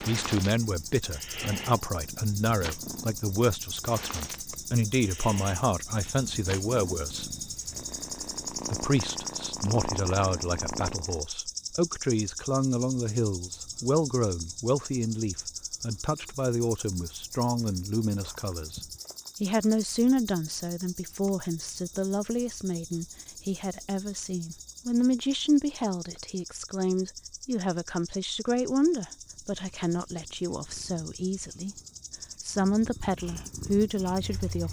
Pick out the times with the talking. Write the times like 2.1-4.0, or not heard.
0.0-7.3, 8.7-18.8, 19.4-31.8, 32.4-34.6.